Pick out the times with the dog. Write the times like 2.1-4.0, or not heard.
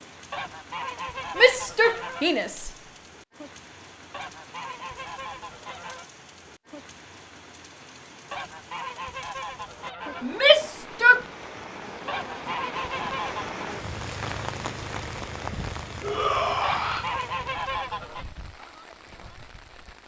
not heard.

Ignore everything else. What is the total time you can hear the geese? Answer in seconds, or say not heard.
9 s.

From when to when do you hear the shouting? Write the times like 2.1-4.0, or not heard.
1.4-2.7, 10.2-11.2, 16.0-17.1.